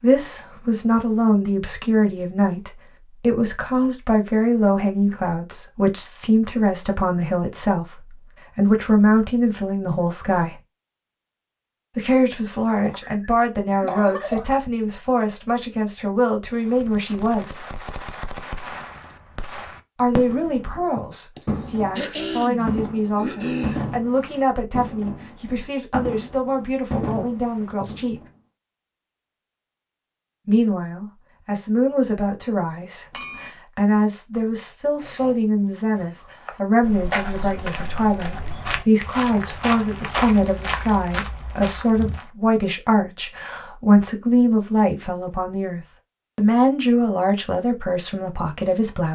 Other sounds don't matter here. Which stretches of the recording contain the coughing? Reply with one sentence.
The coughing can be heard from 12.8 to 14.5 s, from 21.4 to 23.9 s and from 35.0 to 35.8 s.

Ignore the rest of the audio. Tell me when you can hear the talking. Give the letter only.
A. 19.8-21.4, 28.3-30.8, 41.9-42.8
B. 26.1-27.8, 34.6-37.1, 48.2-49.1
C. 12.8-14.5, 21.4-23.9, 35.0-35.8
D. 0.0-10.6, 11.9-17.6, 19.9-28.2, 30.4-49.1
D.